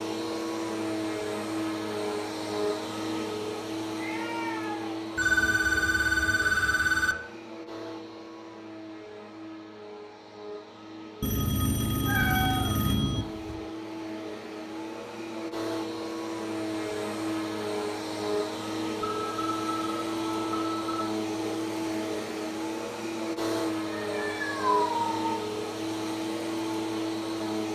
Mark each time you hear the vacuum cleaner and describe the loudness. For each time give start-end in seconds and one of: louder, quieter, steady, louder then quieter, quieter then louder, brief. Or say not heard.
0.0-27.7 quieter then louder.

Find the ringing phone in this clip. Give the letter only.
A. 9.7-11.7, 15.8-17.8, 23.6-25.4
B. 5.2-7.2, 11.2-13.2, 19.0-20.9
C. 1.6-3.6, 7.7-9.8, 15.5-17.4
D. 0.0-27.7
B.